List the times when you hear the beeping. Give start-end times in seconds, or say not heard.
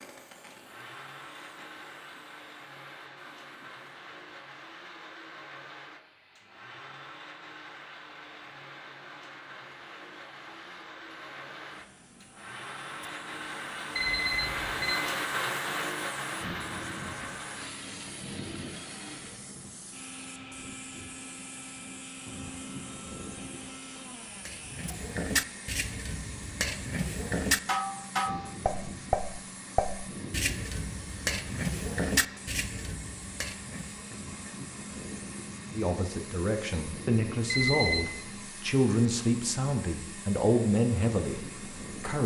13.9-14.9, 37.5-38.0.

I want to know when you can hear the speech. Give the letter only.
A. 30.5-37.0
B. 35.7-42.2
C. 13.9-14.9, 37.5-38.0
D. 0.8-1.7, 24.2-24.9
B.